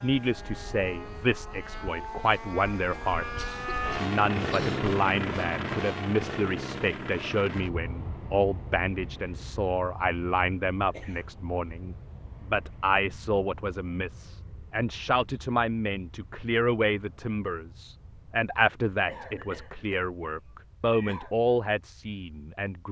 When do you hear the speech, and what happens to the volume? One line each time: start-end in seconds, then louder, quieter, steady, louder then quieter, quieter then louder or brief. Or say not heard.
0.0-22.8 steady.